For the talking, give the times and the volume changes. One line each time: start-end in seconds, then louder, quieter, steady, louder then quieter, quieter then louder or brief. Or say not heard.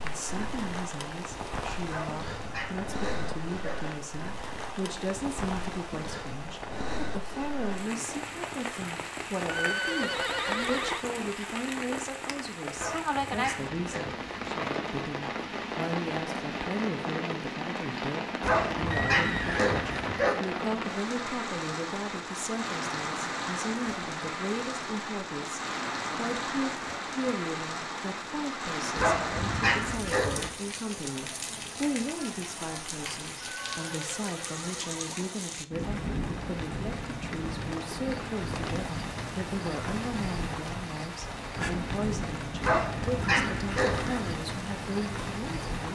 0.0-45.9 steady.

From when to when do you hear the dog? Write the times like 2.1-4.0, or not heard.
1.9-3.8, 12.8-14.5, 18.4-20.4, 28.9-30.5, 42.6-44.4.